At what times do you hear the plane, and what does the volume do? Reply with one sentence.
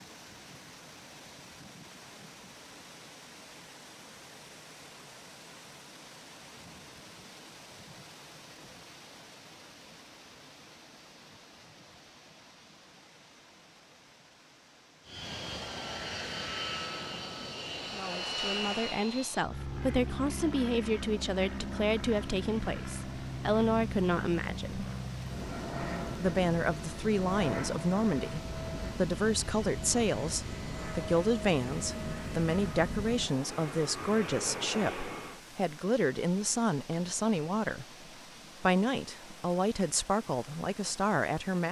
You can hear the plane from 15.1 to 35.4 s, at a steady volume.